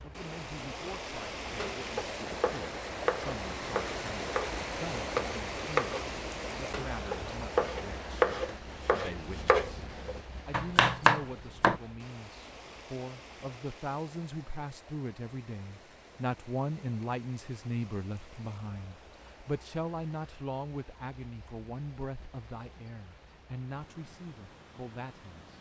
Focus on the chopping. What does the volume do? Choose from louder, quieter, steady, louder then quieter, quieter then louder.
louder.